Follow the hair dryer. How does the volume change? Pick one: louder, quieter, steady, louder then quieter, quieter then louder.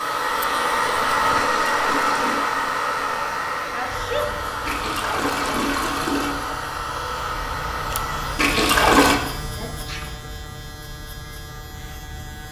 quieter.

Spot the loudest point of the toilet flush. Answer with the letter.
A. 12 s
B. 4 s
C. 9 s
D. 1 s
C.